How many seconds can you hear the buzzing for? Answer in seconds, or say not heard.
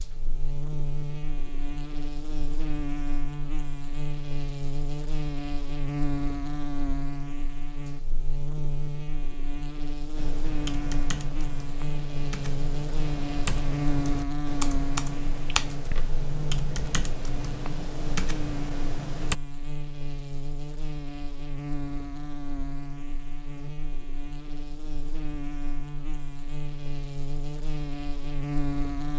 29 s.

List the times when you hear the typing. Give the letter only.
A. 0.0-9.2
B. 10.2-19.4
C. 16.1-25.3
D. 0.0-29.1
B.